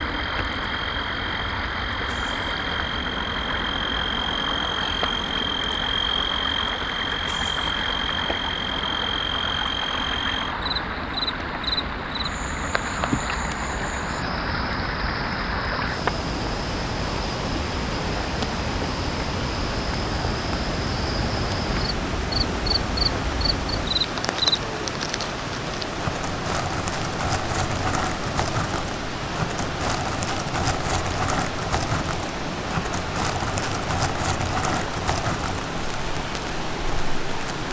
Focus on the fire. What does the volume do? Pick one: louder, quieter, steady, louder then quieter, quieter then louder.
louder.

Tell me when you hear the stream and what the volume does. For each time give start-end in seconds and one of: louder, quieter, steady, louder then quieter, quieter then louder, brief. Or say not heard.
0.0-37.6 steady.